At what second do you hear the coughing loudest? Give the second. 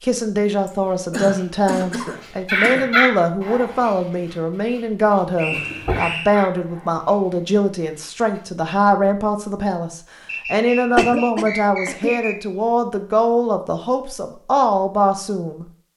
11 s.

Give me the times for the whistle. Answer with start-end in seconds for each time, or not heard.
5.3-6.3, 10.2-12.3.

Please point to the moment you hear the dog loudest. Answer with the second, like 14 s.
3 s.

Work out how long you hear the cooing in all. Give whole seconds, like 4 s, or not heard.
not heard.